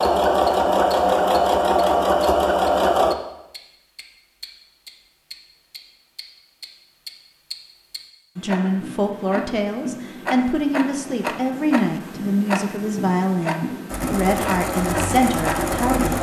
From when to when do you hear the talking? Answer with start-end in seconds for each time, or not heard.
8.3-16.1.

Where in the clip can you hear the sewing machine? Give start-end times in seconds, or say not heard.
0.0-3.1, 13.8-16.1.